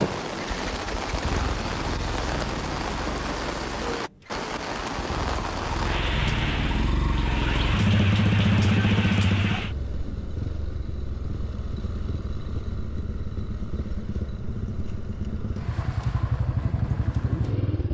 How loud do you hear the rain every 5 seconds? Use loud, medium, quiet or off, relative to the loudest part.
loud, loud, off, off.